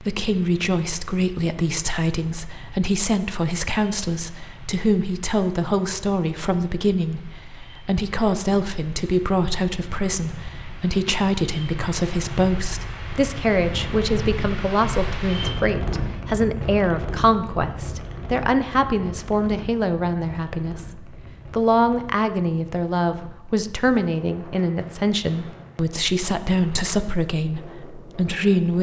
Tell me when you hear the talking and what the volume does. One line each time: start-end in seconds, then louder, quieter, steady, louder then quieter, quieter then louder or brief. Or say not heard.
0.0-28.7 steady.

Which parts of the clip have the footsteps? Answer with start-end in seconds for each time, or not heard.
not heard.